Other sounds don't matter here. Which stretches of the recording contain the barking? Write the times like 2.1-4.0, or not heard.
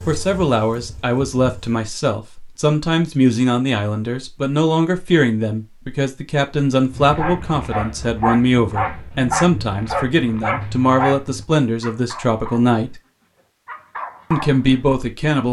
6.9-14.9.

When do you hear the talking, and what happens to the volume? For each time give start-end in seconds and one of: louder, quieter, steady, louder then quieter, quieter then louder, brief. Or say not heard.
0.1-13.0 steady
14.3-15.4 brief.